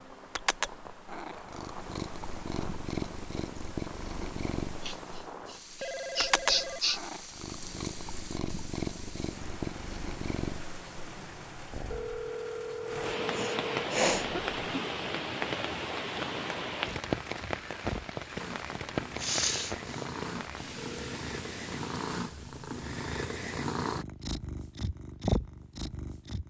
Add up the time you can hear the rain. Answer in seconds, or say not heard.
22 s.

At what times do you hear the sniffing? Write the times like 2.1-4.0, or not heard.
4.8-7.0, 13.2-14.3, 18.9-20.2.